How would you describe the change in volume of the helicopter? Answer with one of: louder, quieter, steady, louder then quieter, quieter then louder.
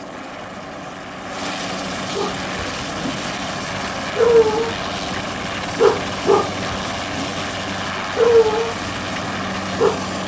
steady.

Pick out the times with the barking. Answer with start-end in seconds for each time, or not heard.
2.1-10.0.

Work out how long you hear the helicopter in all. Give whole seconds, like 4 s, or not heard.
10 s.